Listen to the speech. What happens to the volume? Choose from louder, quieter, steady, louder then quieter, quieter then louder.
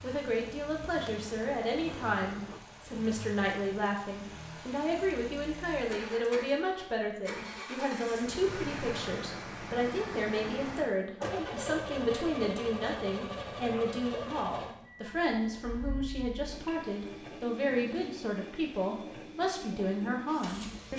steady.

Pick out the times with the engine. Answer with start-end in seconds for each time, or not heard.
0.0-20.9.